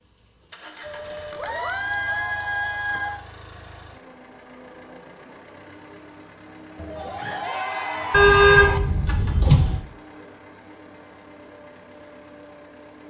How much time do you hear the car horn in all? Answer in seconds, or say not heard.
2 s.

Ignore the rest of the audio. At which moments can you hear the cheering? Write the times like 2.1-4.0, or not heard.
0.8-3.2, 6.8-8.8.